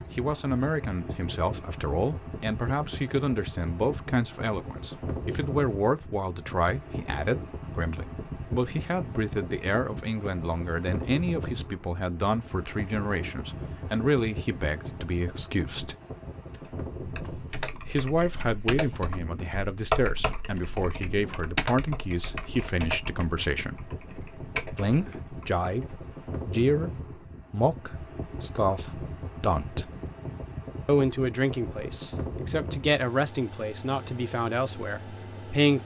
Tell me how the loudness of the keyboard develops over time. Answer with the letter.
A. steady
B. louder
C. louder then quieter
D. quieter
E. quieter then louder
C.